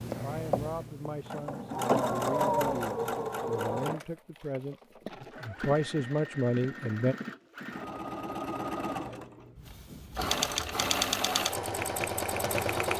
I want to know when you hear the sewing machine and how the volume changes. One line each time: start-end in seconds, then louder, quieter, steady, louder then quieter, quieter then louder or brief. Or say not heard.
0.0-12.9 quieter then louder.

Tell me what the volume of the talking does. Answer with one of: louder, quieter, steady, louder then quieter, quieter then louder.
louder.